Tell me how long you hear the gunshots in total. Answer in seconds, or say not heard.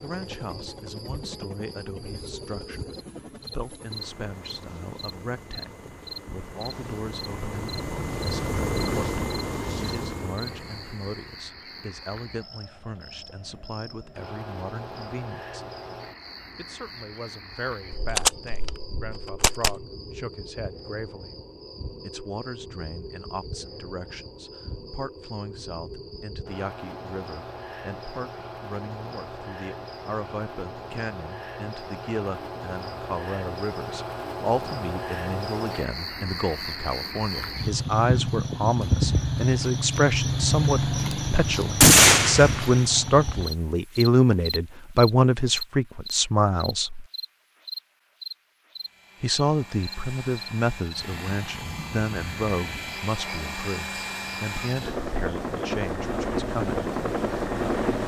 4 s.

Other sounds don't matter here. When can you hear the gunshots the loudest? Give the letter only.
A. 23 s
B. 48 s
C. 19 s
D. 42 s
D.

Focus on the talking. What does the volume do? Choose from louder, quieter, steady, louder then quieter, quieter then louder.
louder.